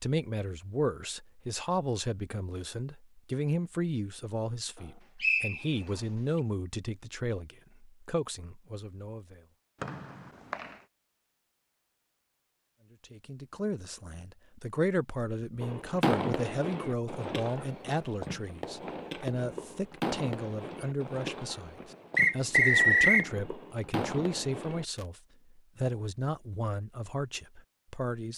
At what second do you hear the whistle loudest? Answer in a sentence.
The loudest moment of the whistle is at 23 seconds.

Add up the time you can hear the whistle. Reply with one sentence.
The whistle can be heard for 3 seconds in total.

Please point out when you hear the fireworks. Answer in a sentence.
You can hear the fireworks from 15.6 to 25.1 s.